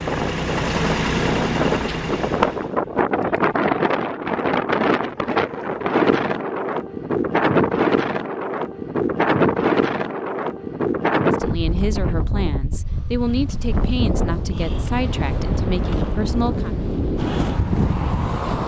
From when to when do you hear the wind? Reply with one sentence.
You can hear the wind from 0.0 to 18.6 s.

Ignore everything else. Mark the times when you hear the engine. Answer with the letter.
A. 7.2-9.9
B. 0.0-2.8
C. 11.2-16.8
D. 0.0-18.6
B.